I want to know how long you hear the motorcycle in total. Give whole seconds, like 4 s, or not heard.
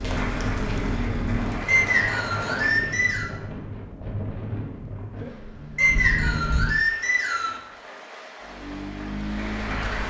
3 s.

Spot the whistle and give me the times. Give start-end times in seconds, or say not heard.
1.6-3.3, 5.8-7.6.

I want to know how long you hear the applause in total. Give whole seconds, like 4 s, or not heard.
6 s.